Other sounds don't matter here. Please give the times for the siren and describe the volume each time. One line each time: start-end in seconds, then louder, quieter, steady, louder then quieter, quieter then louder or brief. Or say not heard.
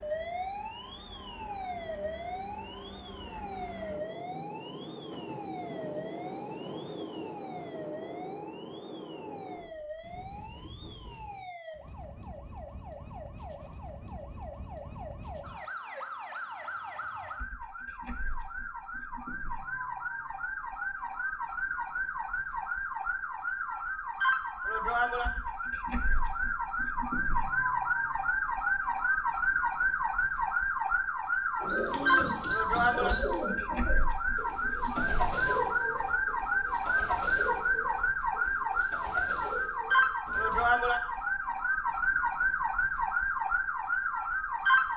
0.0-44.9 louder.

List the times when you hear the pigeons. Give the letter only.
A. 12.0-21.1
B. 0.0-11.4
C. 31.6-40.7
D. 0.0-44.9
C.